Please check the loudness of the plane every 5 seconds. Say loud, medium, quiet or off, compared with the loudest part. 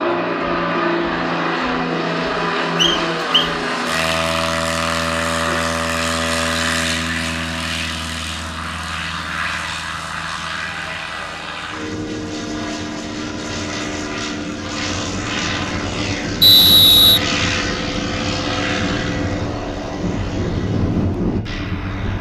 loud, loud, medium, loud, loud.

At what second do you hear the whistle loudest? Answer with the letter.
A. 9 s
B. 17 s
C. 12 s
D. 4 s
B.